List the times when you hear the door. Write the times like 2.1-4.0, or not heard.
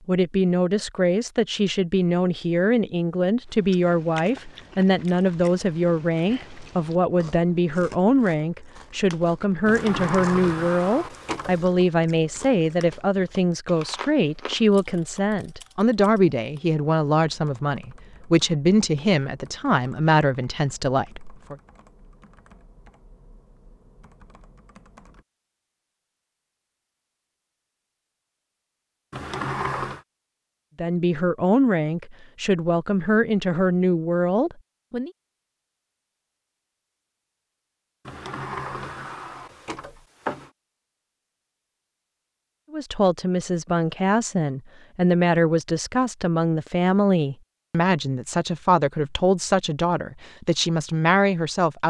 9.7-11.7, 29.1-30.0, 38.0-40.5.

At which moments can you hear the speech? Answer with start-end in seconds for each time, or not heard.
0.1-21.6, 30.8-35.1, 42.7-51.8.